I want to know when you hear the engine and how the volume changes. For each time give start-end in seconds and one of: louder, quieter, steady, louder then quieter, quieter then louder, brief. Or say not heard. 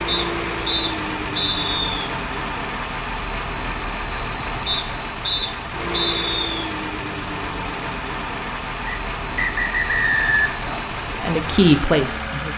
0.0-12.5 steady.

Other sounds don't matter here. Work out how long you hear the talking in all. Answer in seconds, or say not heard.
2 s.